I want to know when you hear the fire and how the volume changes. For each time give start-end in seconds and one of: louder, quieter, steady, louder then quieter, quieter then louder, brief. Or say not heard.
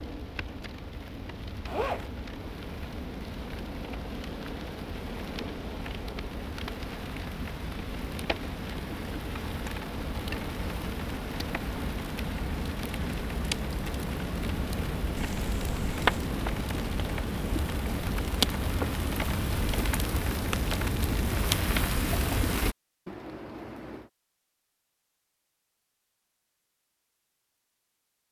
0.0-22.8 louder.